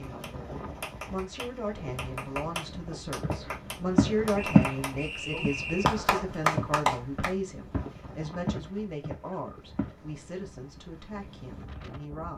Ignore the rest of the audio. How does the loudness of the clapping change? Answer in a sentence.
The volume of the clapping goes up.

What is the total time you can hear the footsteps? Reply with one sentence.
You can hear the footsteps for 6 seconds altogether.